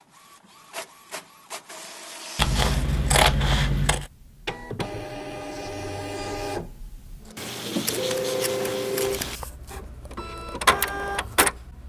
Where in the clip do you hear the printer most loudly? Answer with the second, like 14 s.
11 s.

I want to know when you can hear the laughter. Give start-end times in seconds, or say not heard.
not heard.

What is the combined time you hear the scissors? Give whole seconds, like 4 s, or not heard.
4 s.